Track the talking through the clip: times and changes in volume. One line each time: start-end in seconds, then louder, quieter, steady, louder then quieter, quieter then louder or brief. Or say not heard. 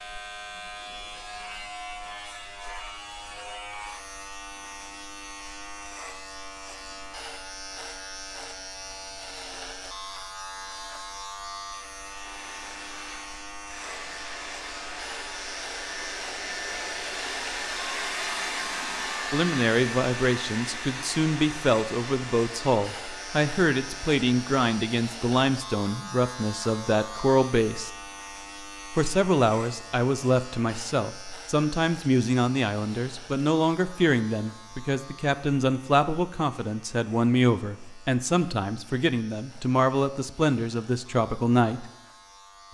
19.3-27.9 steady
28.9-41.9 steady.